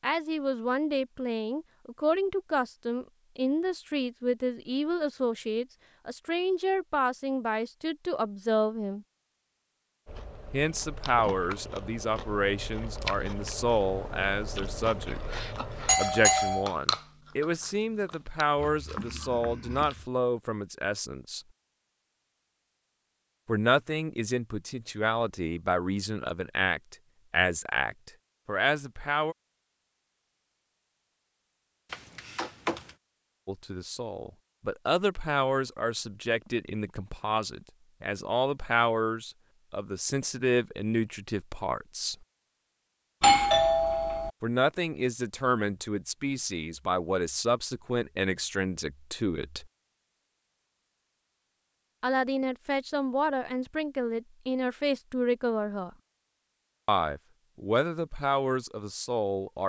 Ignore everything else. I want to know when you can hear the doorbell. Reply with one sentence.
The doorbell can be heard from 15.8 to 16.6 s, from 31.9 to 32.9 s and from 43.2 to 44.3 s.